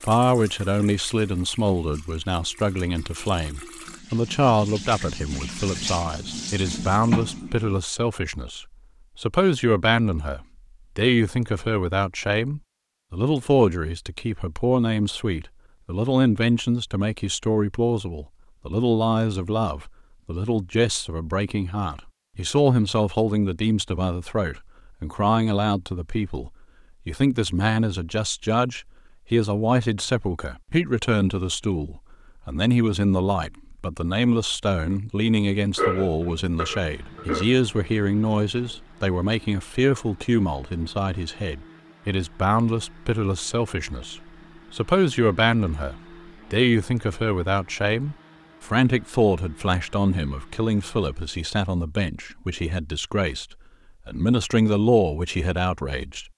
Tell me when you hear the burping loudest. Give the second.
36 s.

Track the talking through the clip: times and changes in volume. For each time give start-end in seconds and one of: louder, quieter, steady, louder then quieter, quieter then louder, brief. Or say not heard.
0.0-56.2 steady.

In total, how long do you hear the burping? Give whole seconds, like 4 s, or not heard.
2 s.